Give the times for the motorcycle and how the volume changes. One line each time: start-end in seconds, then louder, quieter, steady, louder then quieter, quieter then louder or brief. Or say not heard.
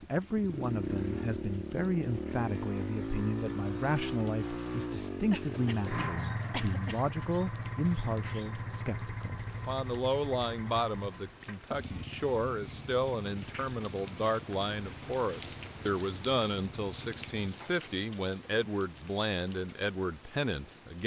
0.0-17.5 quieter.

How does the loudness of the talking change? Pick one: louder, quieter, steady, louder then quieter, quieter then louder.
steady.